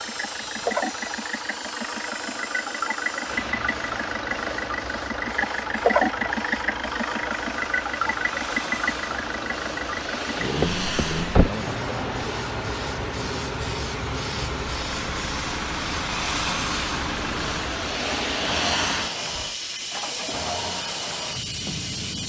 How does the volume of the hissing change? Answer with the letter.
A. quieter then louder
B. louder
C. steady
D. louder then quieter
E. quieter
B.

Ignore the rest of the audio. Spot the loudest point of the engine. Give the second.
6 s.